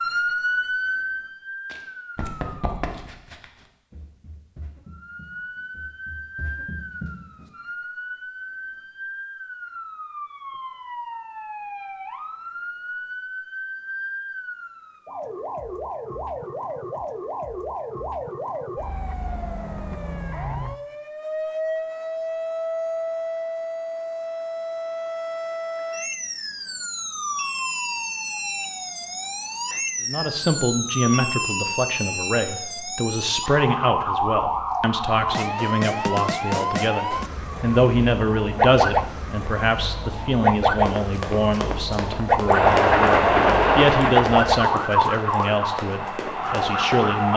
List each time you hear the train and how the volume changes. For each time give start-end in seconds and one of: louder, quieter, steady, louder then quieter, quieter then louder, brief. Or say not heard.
42.5-47.3 quieter.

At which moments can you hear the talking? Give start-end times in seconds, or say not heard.
30.1-47.3.